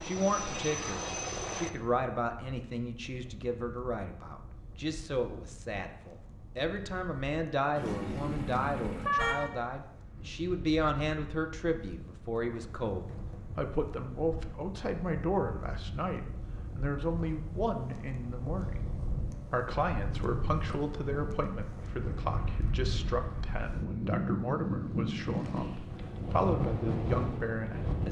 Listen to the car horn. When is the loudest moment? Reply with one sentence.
The loudest moment of the car horn is at 9 seconds.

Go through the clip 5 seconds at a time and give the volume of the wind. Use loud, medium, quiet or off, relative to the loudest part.
quiet, quiet, quiet, medium, loud, loud.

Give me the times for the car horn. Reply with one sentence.
The car horn can be heard from 7.8 to 9.4 s.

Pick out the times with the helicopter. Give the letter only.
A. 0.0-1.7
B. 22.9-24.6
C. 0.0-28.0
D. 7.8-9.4
A.